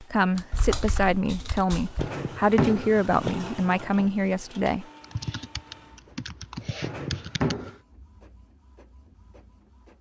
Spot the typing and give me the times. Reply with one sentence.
You can hear the typing from 0.3 to 2.1 s and from 5.0 to 7.7 s.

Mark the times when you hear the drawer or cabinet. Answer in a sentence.
You can hear the drawer or cabinet from 1.9 to 3.4 s and from 6.8 to 7.8 s.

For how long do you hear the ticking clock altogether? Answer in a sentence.
You can't hear the ticking clock here.